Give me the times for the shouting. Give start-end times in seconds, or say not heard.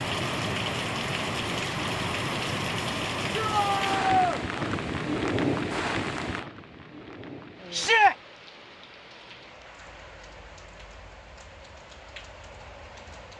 3.4-4.4, 7.7-8.2.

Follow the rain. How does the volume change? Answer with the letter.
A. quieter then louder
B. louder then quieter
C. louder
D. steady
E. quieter
E.